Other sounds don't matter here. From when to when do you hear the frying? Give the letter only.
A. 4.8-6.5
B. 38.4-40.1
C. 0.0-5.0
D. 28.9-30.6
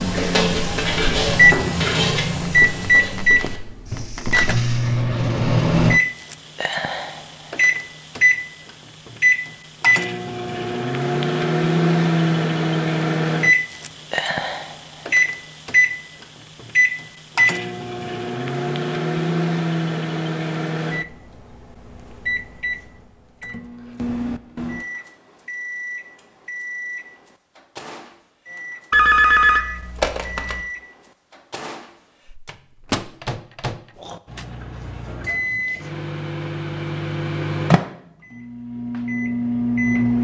C.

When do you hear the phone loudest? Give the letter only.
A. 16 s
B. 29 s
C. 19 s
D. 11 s
B.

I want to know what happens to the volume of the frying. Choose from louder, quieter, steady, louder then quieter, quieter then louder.
quieter.